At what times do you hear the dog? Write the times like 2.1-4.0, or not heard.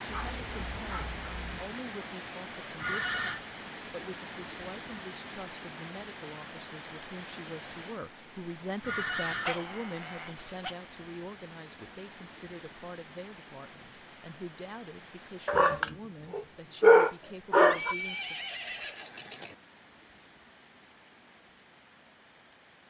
0.1-1.7, 9.2-10.8, 15.4-17.9.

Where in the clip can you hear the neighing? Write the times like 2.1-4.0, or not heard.
2.8-3.4, 8.8-9.6, 17.6-19.6.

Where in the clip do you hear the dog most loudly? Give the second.
17 s.